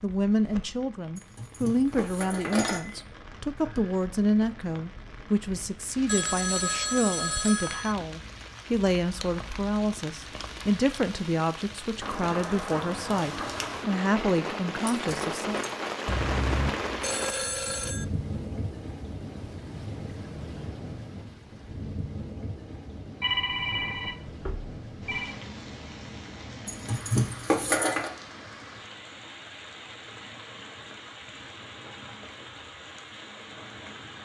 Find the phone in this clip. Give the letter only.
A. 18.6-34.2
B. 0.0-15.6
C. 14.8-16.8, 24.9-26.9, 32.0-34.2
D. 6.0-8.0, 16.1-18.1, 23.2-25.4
D.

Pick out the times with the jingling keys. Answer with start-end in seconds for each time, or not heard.
1.1-3.0, 14.8-15.7, 26.6-28.1.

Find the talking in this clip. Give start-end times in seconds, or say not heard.
0.0-15.6.